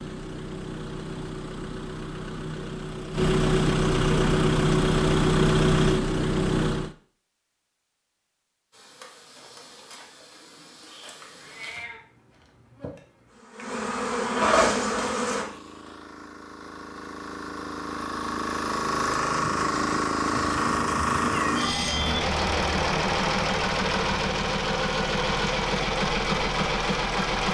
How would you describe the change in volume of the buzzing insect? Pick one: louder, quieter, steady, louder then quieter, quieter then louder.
louder.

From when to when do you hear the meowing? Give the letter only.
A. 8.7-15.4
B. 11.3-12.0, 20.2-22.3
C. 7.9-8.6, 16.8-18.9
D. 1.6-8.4
B.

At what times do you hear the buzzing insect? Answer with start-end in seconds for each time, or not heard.
8.7-15.4.